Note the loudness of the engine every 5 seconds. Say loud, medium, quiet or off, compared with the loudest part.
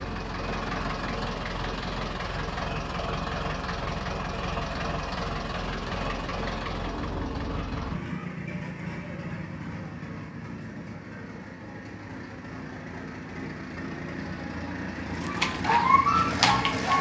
loud, loud, medium, loud.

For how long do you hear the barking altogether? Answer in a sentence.
The barking can be heard for 2 seconds in total.